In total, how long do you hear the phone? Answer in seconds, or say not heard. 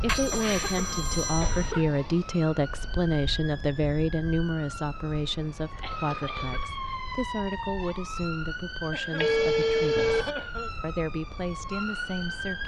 3 s.